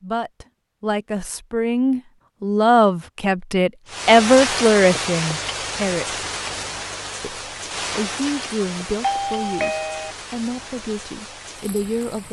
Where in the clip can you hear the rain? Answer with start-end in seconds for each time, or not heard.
3.9-12.2.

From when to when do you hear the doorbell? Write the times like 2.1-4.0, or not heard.
9.0-10.2.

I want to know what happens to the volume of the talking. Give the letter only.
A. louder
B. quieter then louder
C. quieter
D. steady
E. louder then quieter
E.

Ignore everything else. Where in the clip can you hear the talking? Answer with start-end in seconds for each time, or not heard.
0.0-6.0, 7.2-12.2.